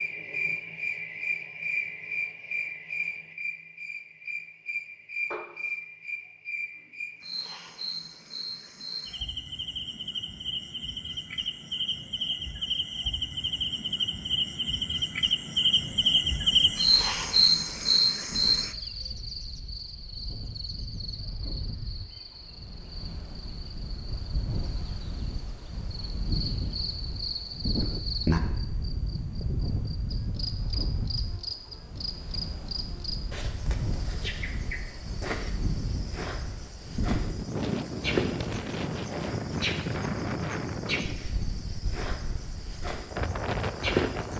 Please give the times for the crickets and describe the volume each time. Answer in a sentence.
You can hear the crickets from 0.0 to 44.3 s, getting louder then quieter.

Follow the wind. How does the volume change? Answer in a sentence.
The volume of the wind goes up.